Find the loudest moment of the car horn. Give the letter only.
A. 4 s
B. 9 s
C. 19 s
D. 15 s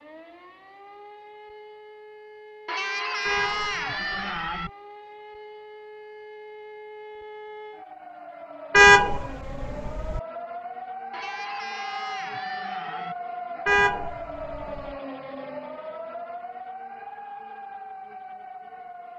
B.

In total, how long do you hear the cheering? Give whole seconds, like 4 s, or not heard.
4 s.